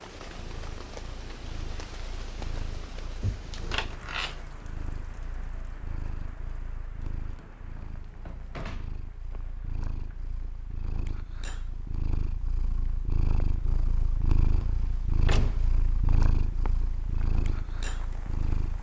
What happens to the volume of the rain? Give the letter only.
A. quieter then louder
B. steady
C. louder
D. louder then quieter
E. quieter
A.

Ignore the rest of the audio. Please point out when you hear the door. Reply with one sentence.
You can hear the door from 3.2 to 4.3 s, from 7.3 to 9.0 s and from 15.2 to 15.8 s.